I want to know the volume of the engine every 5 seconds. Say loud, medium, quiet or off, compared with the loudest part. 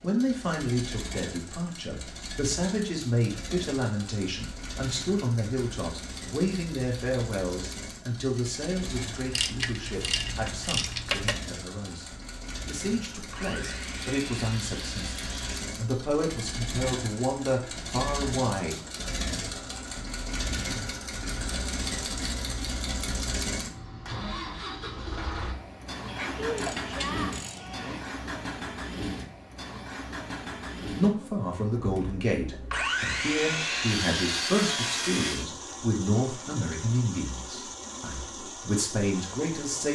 medium, medium, medium, loud, loud, loud, medium, medium.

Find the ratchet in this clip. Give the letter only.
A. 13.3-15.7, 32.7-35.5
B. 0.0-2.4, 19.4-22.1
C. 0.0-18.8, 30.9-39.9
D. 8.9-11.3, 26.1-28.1
D.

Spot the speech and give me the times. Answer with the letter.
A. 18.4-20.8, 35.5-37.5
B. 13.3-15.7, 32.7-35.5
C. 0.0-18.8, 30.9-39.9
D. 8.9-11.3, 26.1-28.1
C.